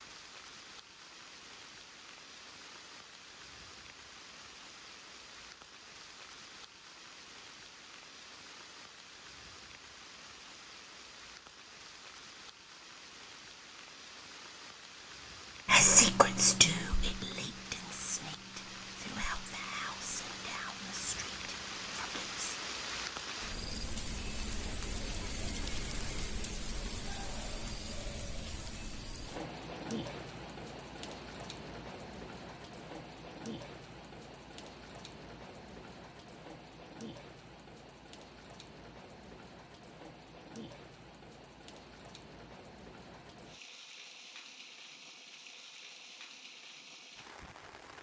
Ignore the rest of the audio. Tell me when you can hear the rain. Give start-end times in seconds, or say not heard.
0.0-47.9.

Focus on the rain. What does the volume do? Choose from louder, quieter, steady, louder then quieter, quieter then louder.
louder then quieter.